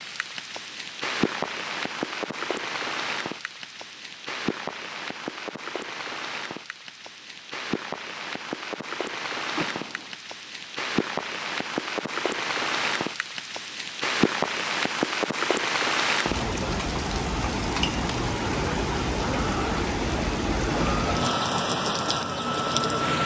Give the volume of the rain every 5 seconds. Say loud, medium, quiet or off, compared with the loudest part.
medium, medium, loud, loud, loud.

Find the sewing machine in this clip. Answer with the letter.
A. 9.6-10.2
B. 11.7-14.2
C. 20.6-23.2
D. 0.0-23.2
C.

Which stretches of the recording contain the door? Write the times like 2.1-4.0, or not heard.
9.6-10.2.